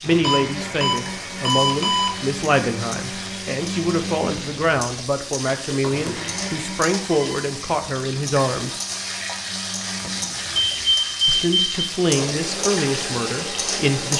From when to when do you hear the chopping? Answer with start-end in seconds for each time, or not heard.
not heard.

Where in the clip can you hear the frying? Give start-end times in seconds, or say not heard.
0.0-14.1.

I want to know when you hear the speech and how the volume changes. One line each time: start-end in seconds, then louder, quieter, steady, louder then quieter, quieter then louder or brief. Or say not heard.
0.0-8.8 steady
11.2-14.1 brief.